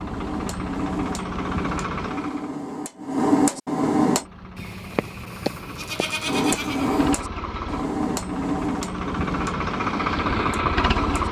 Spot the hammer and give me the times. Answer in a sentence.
The hammer can be heard from 0.0 to 4.2 s and from 6.2 to 11.2 s.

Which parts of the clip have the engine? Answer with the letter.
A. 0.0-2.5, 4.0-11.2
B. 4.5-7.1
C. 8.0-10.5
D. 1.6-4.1
A.